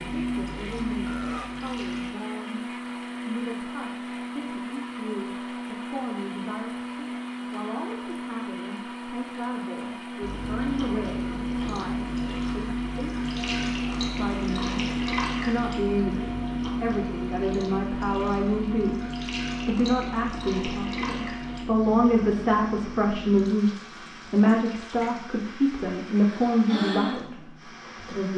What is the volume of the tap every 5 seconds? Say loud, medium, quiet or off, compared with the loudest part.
medium, off, loud, loud, medium, medium.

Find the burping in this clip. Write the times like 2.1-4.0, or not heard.
1.1-1.6.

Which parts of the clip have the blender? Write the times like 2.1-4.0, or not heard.
0.0-28.3.